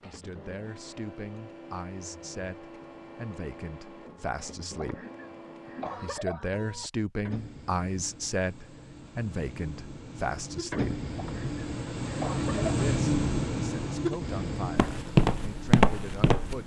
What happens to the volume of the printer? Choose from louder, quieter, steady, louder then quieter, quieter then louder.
louder.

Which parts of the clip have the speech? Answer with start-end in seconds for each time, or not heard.
0.1-5.0, 6.0-11.0, 12.3-16.6.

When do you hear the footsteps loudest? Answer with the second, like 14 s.
15 s.